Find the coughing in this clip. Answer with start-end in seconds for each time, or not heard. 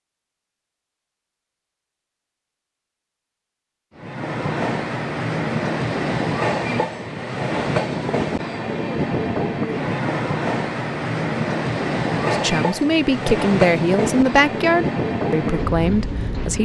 not heard.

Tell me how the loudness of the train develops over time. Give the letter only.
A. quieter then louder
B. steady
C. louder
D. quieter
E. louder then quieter
B.